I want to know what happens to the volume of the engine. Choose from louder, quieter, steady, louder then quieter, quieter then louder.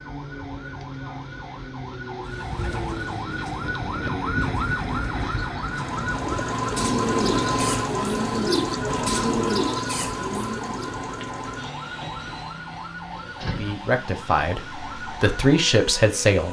quieter.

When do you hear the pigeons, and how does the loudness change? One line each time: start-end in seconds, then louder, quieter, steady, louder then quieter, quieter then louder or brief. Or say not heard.
2.2-10.9 louder.